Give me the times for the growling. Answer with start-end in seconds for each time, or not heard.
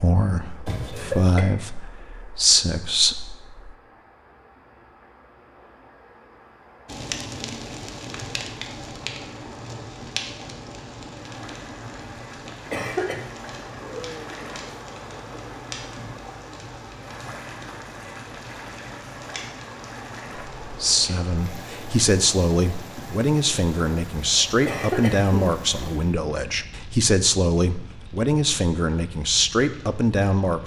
13.6-14.7.